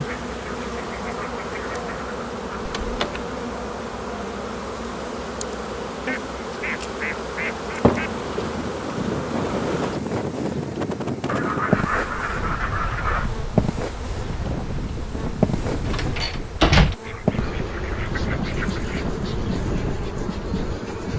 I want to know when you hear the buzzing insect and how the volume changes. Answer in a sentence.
You can hear the buzzing insect from 0.0 to 21.1 s, at a steady volume.